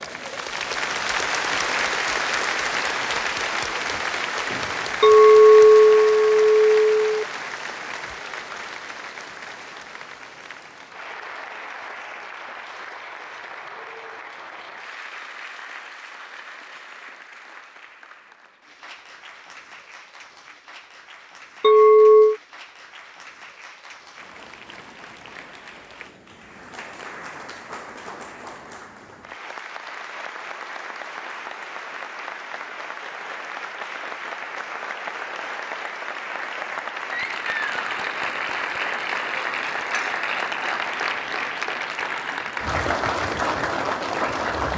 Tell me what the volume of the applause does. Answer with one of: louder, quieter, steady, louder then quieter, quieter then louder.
quieter then louder.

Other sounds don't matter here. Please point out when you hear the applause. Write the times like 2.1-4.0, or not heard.
0.0-44.7.